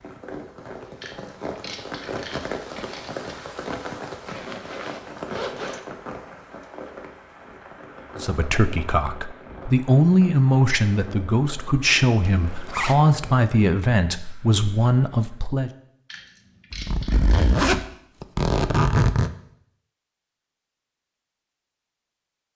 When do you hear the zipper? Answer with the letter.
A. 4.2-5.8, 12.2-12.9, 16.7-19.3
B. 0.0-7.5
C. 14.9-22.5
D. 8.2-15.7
A.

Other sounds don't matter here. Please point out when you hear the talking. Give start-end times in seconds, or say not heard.
8.2-15.7.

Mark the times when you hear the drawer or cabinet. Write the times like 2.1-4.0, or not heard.
not heard.